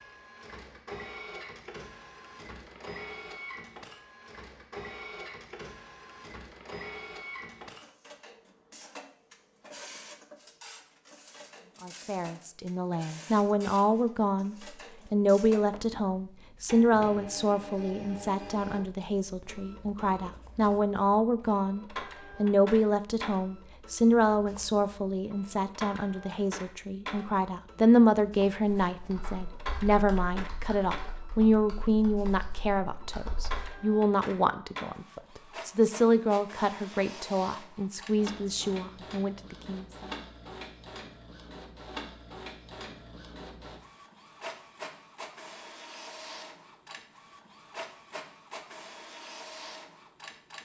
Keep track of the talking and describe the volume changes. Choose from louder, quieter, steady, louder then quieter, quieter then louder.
steady.